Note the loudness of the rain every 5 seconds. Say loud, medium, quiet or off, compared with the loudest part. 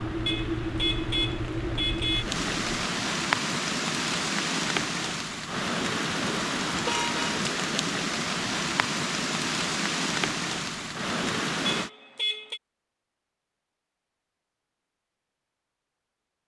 loud, loud, loud, off.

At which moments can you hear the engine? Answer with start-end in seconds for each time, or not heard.
0.0-2.9.